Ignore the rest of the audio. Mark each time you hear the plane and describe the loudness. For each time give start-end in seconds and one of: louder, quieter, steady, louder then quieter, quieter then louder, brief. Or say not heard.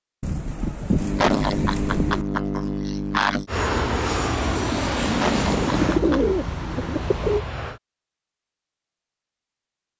3.5-7.8 quieter then louder.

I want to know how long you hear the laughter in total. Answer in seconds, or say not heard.
4 s.